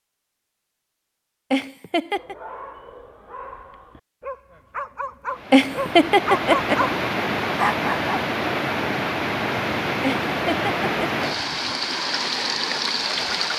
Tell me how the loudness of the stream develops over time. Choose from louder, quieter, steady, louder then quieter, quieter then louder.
steady.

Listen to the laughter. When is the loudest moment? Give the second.
6 s.